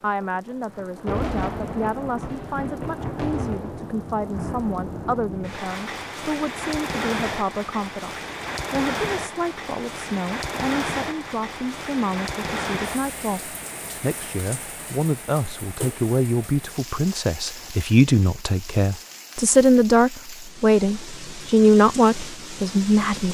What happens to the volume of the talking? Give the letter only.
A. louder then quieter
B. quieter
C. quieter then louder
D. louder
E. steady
D.